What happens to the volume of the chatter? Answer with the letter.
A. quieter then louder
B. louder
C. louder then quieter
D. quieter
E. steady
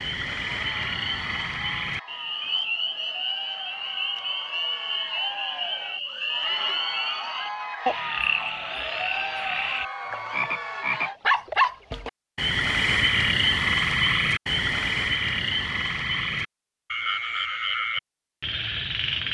B.